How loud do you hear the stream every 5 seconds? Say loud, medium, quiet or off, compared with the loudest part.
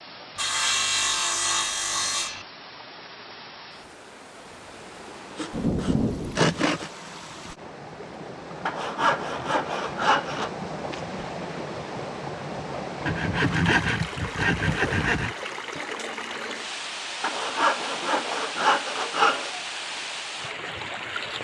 medium, medium, loud, loud, loud.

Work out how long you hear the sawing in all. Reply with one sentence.
The sawing can be heard for 10 seconds in total.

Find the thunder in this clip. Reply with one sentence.
The thunder can be heard from 5.5 to 6.6 s.